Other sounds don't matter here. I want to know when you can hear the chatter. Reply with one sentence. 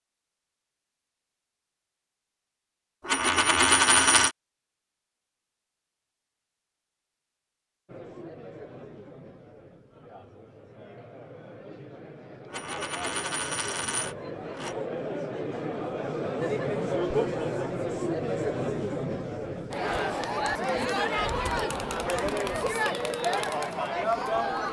You can hear the chatter from 7.8 to 24.6 s.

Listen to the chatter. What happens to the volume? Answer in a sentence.
The volume of the chatter goes up.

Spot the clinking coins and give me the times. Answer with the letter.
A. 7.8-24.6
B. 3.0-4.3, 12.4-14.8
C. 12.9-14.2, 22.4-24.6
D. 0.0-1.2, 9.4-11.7
B.